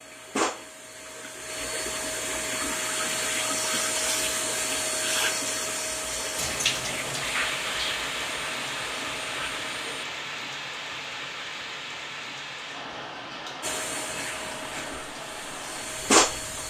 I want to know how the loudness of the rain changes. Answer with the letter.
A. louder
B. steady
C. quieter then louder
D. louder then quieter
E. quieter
E.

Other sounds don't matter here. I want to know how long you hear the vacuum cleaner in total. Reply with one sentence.
The vacuum cleaner can be heard for 13 seconds in total.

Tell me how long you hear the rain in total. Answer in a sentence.
The rain can be heard for 10 seconds in total.